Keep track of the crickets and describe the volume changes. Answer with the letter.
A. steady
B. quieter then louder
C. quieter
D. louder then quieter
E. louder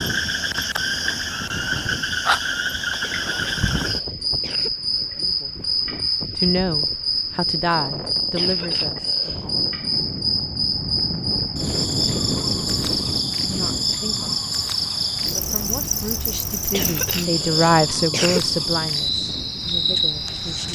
A.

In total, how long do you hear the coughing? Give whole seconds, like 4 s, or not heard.
5 s.